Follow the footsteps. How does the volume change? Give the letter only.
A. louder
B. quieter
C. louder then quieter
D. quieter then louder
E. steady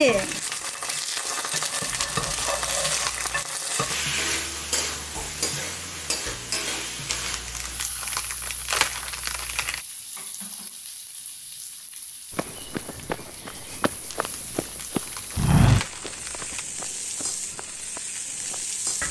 C.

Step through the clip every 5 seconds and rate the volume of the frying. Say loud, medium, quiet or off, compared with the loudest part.
loud, medium, quiet, medium.